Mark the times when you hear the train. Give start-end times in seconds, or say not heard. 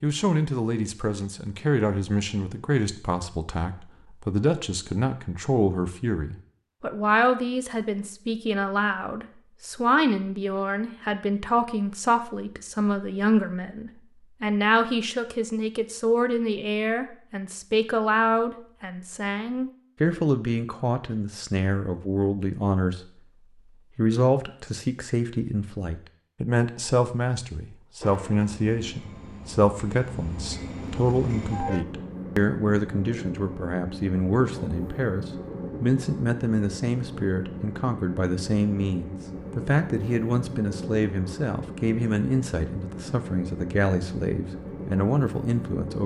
28.0-46.0.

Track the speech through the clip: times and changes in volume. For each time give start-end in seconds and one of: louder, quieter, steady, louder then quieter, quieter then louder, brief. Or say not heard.
0.0-23.1 steady
23.8-46.0 steady.